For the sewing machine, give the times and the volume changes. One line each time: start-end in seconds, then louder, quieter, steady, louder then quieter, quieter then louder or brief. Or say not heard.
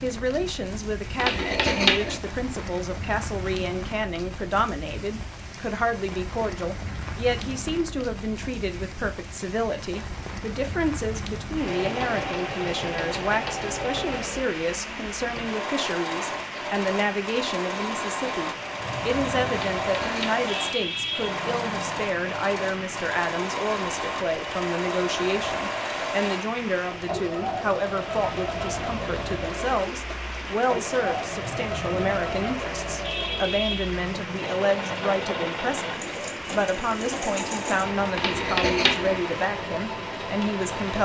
11.6-41.0 steady.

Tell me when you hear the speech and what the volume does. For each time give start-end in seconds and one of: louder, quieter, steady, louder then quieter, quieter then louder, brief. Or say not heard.
0.0-41.0 steady.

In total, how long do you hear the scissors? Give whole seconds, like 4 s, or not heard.
3 s.